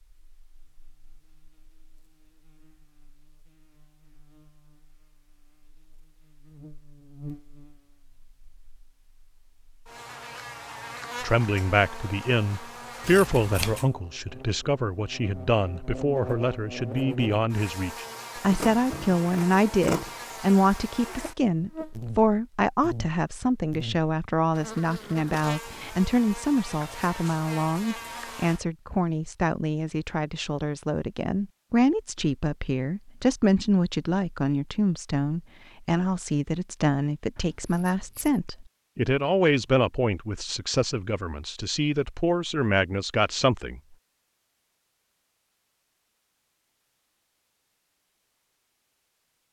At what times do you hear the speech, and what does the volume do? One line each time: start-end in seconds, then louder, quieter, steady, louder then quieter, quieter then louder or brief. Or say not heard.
11.2-43.8 steady.